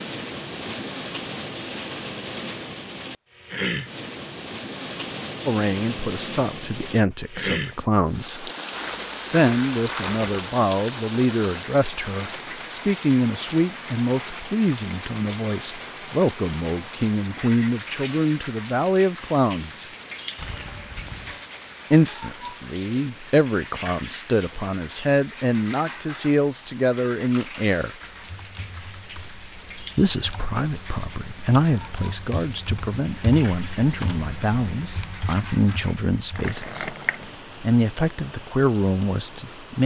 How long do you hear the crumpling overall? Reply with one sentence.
You can hear the crumpling for 4 seconds altogether.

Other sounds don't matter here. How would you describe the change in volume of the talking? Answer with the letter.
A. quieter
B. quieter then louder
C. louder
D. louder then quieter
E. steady
E.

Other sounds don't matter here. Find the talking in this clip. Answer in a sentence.
The talking can be heard from 5.5 to 8.5 s, from 9.3 to 19.9 s, from 21.9 to 27.9 s and from 29.9 to 39.8 s.